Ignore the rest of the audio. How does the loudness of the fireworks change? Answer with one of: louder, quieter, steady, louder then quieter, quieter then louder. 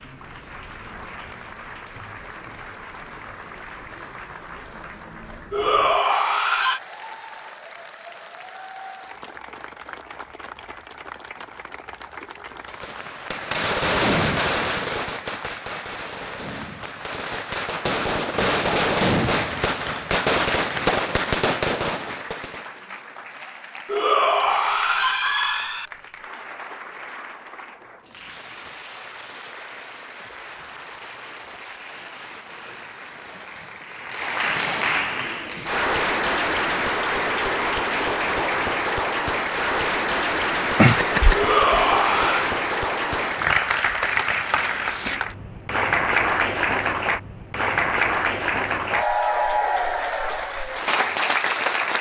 quieter then louder.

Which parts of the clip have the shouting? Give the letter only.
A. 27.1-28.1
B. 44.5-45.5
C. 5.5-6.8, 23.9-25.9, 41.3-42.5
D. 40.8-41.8
C.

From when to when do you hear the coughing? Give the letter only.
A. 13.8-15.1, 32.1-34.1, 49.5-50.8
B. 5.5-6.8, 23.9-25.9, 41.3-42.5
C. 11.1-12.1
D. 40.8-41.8
D.